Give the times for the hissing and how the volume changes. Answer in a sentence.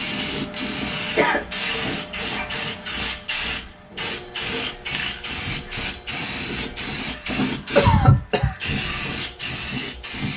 You can hear the hissing from 0.0 to 10.3 s, at a steady volume.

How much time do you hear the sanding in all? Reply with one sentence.
You can't hear the sanding here.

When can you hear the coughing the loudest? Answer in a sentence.
The loudest moment of the coughing is at 8 seconds.